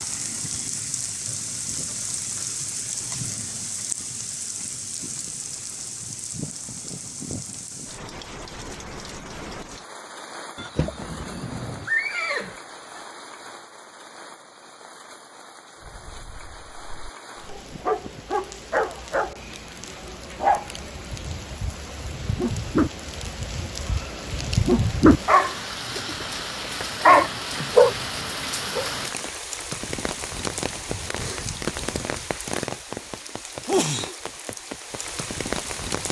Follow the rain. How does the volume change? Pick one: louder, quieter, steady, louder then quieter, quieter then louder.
quieter then louder.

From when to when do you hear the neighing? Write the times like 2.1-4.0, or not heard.
10.6-13.0.